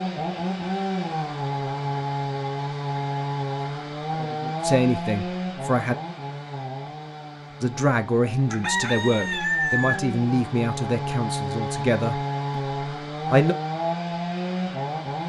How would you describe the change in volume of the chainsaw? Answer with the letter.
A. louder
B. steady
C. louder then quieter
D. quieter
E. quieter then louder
E.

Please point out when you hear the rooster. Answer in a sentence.
You can hear the rooster from 8.5 to 10.1 s.